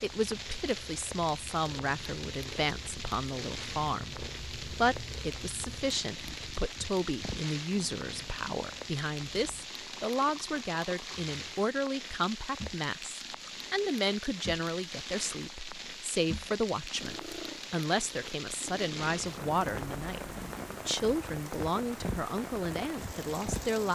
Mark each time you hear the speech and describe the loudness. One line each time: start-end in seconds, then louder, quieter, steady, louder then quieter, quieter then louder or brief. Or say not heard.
0.0-23.9 steady.